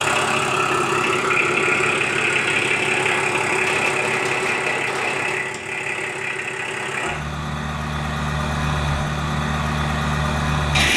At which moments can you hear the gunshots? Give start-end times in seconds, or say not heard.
3.6-5.4.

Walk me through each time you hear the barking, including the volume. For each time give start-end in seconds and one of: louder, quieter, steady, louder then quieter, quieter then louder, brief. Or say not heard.
not heard.